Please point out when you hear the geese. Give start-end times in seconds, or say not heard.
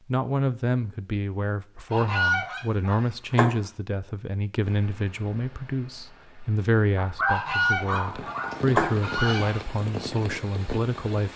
1.9-3.5, 7.2-9.7.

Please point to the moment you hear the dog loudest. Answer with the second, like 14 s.
7 s.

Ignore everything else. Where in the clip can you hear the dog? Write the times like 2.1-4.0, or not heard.
7.0-9.3.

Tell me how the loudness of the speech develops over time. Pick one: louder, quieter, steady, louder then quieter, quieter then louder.
steady.